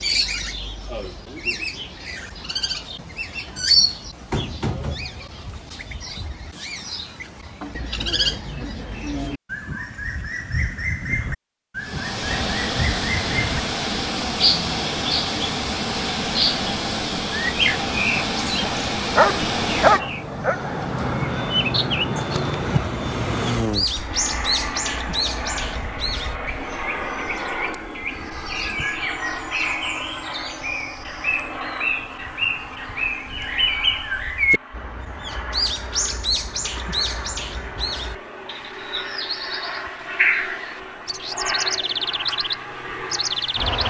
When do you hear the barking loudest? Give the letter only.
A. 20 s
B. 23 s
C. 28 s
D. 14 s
A.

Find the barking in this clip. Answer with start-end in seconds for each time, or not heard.
18.1-20.6.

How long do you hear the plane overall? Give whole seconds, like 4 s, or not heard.
32 s.